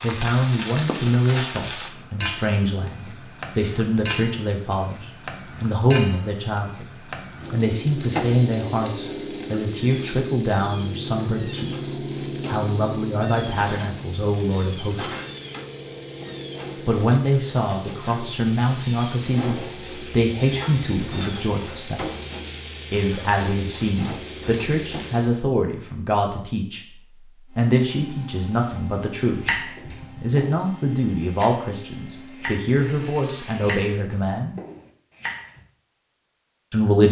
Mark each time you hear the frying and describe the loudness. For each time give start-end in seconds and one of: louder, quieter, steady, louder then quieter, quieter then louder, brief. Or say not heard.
0.0-25.4 steady.